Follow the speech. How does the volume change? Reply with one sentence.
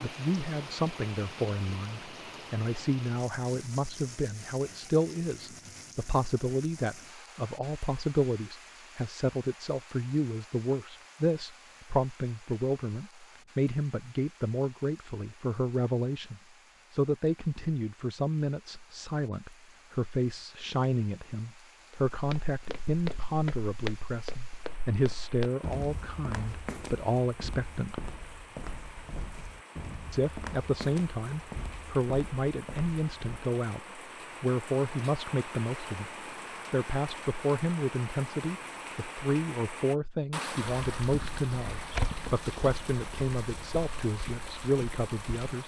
The loudness of the speech stays about the same.